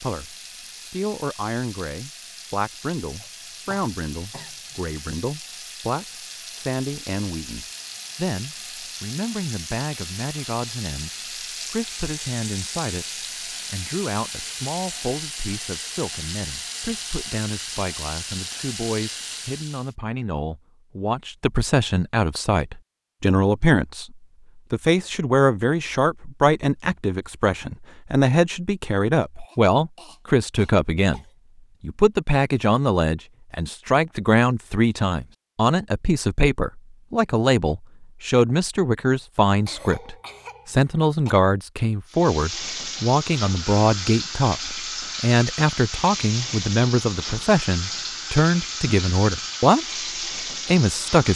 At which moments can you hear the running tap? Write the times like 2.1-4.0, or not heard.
0.0-19.9, 42.0-51.3.